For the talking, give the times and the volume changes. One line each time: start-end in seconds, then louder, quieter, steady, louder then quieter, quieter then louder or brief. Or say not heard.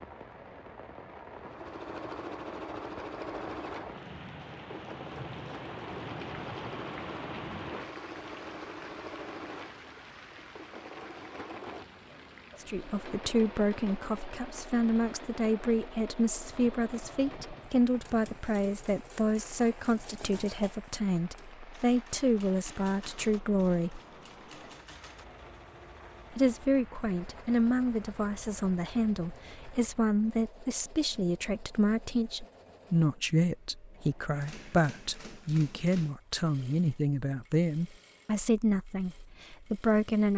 12.6-24.0 steady
26.3-40.3 steady.